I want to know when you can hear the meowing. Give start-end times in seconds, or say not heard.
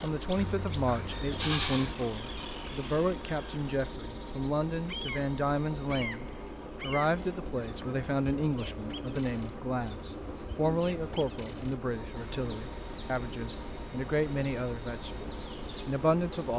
not heard.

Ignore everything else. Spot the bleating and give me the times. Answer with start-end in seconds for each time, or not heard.
0.3-1.9.